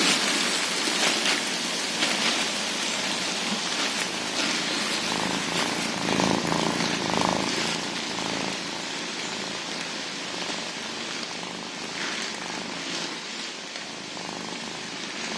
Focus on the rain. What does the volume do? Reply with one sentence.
The loudness of the rain goes down.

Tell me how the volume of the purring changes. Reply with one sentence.
The loudness of the purring goes up, then down.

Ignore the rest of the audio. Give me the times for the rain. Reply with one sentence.
The rain can be heard from 0.0 to 15.3 s.